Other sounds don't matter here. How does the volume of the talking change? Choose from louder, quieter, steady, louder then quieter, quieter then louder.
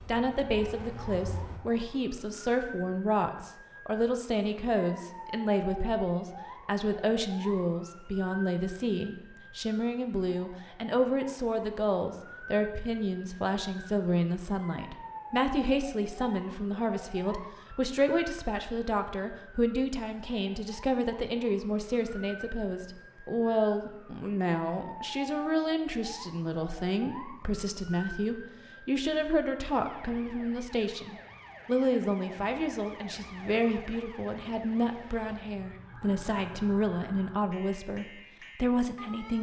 steady.